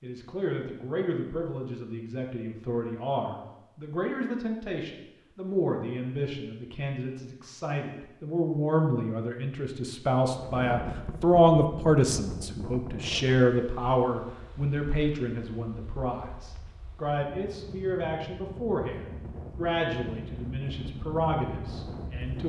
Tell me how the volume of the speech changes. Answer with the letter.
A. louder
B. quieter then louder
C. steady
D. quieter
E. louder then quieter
E.